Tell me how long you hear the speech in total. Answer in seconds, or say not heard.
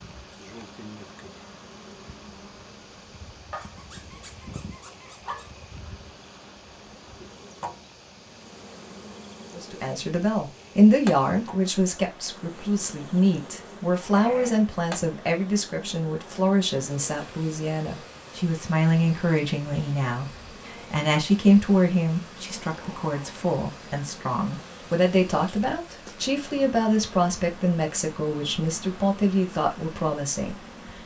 21 s.